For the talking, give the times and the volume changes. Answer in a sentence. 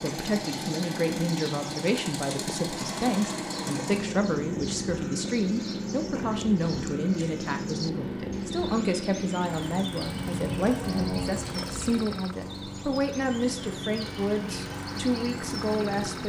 The talking can be heard from 0.0 to 16.2 s, at a steady volume.